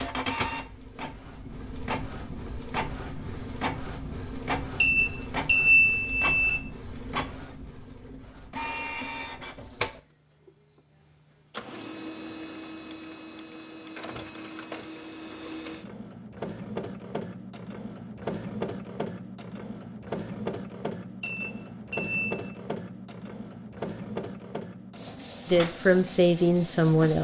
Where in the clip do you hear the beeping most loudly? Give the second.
6 s.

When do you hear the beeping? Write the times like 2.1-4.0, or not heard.
4.8-6.3, 21.2-22.4.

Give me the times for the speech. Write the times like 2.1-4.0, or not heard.
25.4-27.1.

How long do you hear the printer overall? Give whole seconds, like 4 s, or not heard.
27 s.